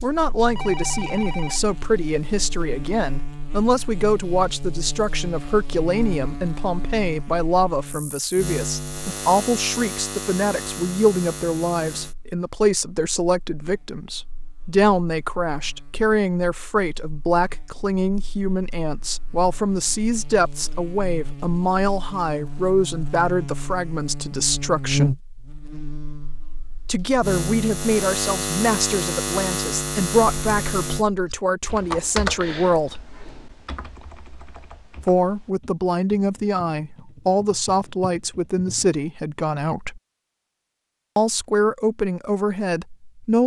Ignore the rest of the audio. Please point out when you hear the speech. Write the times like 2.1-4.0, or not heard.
0.0-25.1, 26.9-33.0, 35.0-40.0, 41.1-43.4.